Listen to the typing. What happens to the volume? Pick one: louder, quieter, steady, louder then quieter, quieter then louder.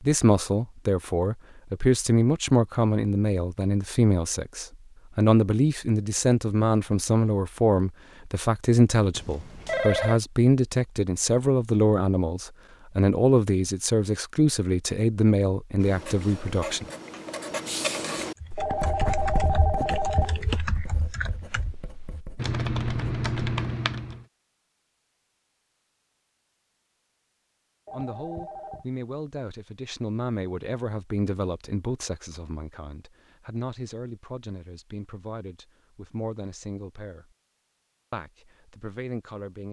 louder.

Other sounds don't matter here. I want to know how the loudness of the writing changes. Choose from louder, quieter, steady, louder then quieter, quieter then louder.
louder then quieter.